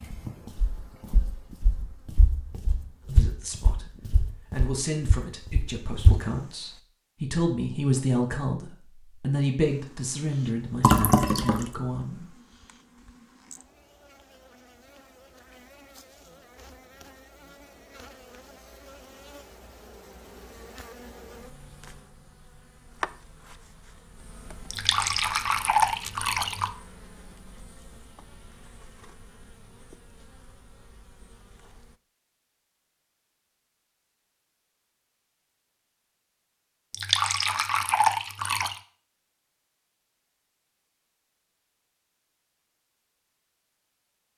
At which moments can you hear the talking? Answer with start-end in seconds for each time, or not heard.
3.1-12.3.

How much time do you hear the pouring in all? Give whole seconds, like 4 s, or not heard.
5 s.